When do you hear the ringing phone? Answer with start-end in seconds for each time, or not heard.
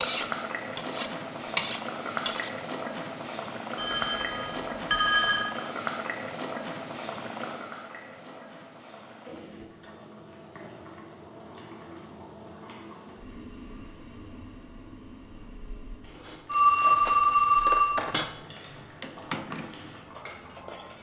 3.8-5.5, 16.4-18.0.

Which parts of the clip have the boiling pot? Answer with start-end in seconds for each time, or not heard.
0.0-20.9.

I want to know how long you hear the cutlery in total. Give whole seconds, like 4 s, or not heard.
7 s.